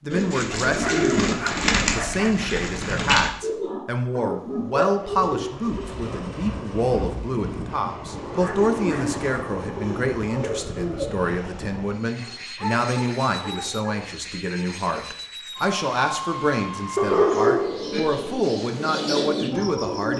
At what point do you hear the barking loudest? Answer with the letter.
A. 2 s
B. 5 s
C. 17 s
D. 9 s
C.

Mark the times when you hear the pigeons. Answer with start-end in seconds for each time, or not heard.
0.1-11.2, 17.1-20.1.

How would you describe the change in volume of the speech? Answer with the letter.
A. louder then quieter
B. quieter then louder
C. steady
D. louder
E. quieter
C.